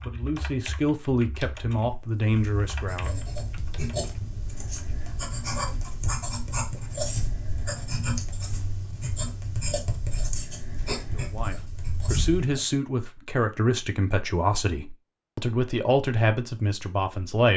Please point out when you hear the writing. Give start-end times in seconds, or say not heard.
2.1-12.6.